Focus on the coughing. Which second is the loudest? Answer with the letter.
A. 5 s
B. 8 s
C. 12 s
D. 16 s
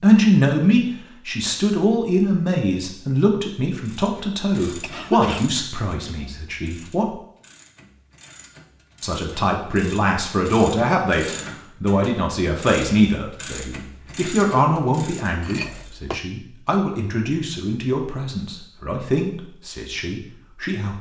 A.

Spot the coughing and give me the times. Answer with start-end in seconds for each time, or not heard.
4.8-5.5, 15.4-16.2.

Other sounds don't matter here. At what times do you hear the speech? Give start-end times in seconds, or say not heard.
0.0-7.1, 9.0-20.9.